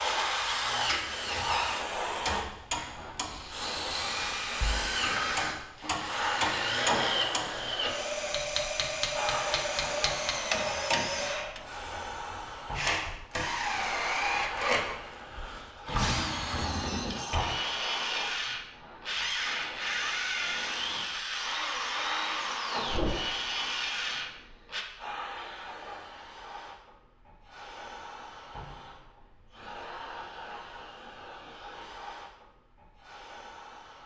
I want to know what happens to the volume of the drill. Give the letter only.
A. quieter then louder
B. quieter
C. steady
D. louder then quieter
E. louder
C.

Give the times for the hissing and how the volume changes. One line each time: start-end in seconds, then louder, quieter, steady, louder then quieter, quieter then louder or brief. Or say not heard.
0.0-34.0 quieter.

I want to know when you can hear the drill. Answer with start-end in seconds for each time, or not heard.
0.0-24.9.